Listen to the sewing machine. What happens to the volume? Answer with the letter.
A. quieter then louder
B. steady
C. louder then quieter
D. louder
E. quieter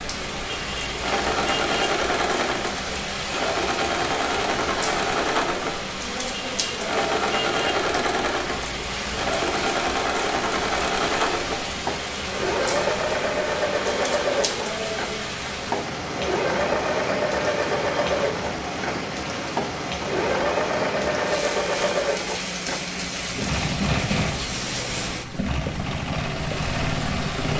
B.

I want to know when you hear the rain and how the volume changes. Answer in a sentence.
You can hear the rain from 0.0 to 27.5 s, at a steady volume.